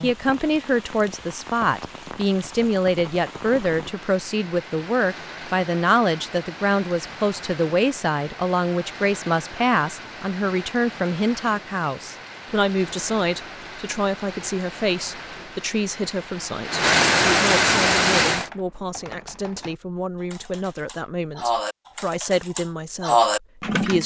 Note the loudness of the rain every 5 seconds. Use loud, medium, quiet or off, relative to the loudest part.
quiet, quiet, quiet, loud, off.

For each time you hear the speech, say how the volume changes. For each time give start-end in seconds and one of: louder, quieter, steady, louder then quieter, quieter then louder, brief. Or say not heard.
0.0-24.0 quieter.